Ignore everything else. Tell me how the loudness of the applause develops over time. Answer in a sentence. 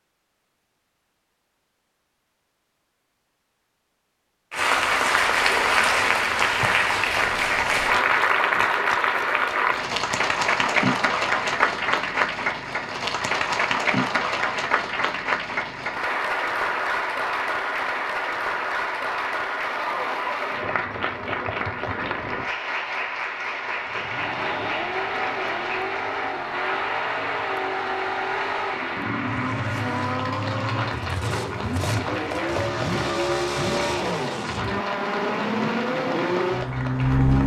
The loudness of the applause goes down.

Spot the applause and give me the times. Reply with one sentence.
You can hear the applause from 4.5 to 37.4 s.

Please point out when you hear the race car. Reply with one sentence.
You can hear the race car from 23.9 to 37.4 s.